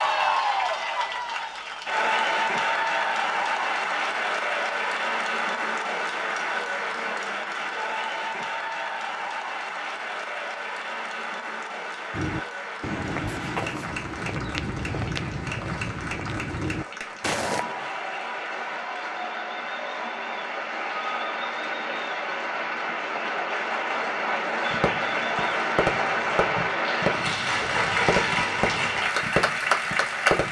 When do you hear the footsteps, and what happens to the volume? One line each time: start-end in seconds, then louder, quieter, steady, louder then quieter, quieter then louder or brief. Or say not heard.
12.1-17.6 steady.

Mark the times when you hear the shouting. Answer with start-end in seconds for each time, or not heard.
not heard.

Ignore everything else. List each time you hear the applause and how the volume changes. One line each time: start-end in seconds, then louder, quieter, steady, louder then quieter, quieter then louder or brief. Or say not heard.
0.0-30.4 quieter then louder.